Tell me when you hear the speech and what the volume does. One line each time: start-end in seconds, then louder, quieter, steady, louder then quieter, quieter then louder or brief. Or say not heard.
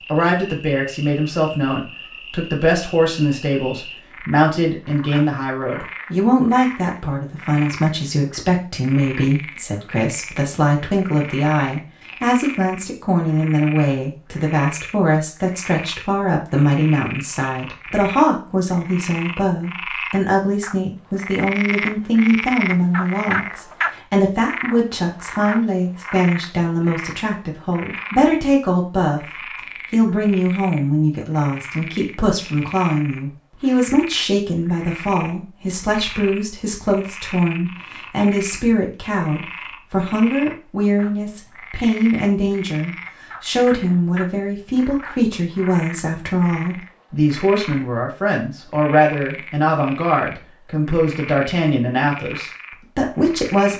0.1-53.7 steady.